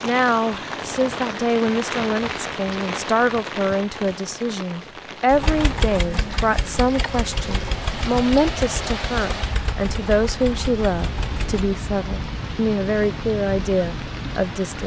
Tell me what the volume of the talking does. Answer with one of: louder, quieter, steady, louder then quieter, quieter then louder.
steady.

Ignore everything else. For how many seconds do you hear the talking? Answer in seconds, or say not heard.
15 s.